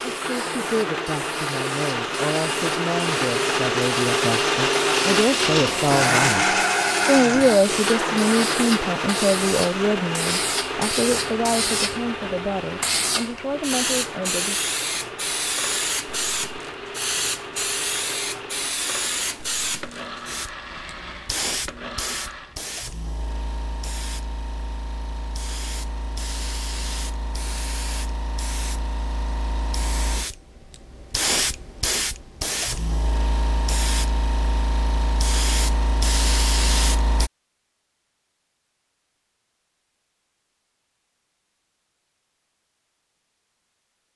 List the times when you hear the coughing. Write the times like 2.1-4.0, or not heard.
not heard.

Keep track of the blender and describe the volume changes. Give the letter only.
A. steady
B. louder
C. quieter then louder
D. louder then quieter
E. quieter
E.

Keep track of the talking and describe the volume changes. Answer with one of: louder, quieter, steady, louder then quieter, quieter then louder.
louder then quieter.